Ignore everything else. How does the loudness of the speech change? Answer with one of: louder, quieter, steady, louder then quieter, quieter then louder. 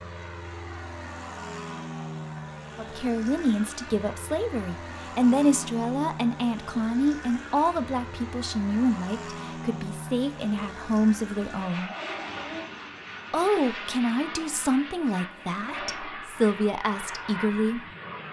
steady.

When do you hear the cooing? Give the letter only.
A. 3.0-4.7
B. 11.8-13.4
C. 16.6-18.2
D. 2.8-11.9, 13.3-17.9
B.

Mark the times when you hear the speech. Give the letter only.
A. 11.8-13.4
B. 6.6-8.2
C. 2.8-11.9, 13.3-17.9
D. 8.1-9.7
C.